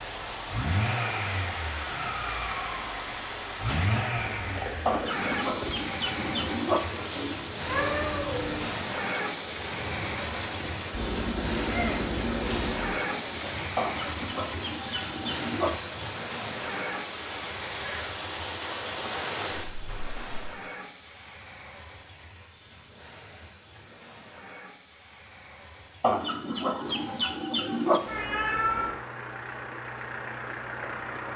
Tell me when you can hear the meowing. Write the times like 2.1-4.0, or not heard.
7.7-8.7, 10.9-12.9, 28.1-28.9.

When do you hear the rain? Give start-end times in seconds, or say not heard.
0.0-20.5.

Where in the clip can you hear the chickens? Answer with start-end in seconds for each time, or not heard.
4.8-6.8, 13.8-15.7, 26.0-28.0.